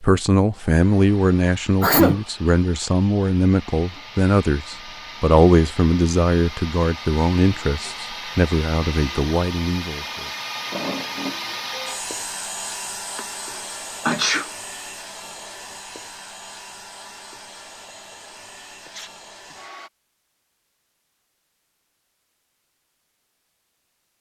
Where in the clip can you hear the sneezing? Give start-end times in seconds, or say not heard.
1.8-2.2, 13.2-14.5, 18.9-19.6.